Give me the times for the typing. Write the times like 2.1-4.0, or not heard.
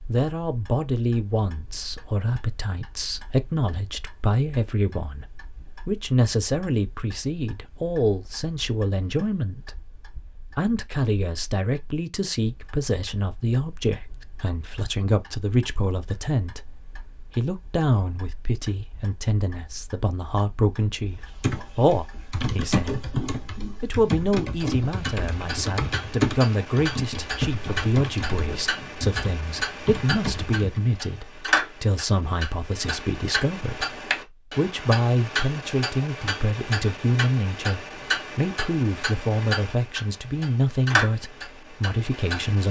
21.4-31.0.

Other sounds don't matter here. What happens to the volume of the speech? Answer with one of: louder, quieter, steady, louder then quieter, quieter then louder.
steady.